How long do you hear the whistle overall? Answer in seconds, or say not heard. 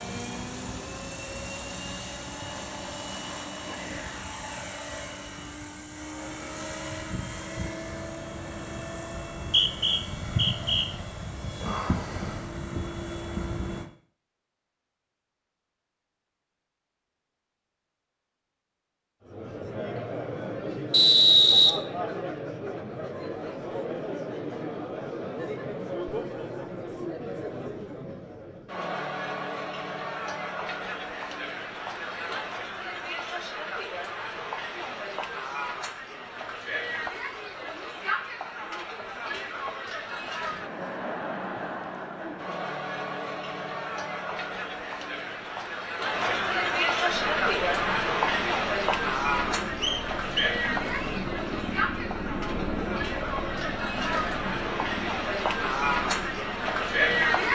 4 s.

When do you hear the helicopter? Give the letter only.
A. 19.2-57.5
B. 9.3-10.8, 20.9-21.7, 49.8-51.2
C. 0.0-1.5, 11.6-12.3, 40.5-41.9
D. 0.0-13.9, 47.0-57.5
D.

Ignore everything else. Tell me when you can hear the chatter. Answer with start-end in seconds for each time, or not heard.
19.2-57.5.